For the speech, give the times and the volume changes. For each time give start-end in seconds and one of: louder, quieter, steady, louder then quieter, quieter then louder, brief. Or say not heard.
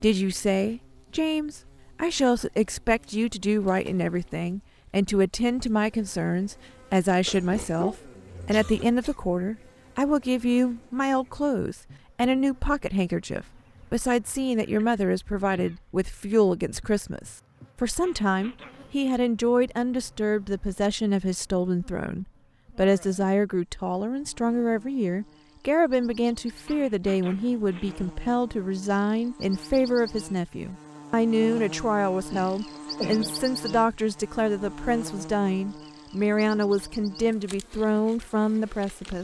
0.0-39.2 steady.